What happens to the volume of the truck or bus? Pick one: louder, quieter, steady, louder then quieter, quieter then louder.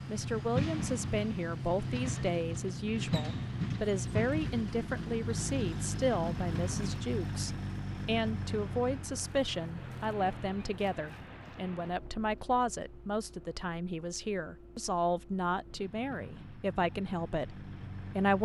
quieter.